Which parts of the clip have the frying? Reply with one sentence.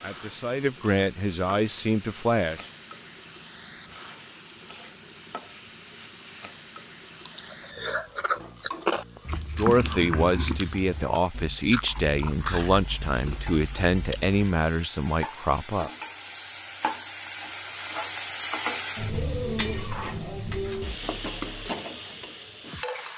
You can hear the frying from 0.0 to 23.1 s.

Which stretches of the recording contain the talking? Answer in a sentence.
The talking can be heard from 0.0 to 2.6 s and from 9.6 to 15.9 s.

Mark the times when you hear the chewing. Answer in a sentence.
You can hear the chewing from 7.2 to 14.7 s.